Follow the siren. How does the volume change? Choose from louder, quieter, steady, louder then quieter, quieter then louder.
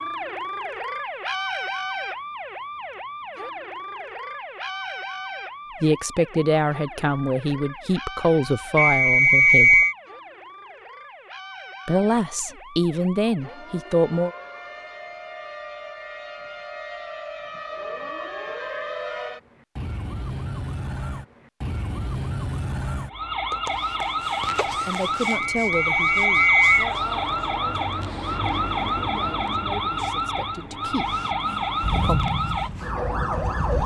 quieter then louder.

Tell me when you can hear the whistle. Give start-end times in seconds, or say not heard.
8.8-9.9, 25.2-26.9.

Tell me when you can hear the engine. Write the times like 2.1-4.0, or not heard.
31.1-33.8.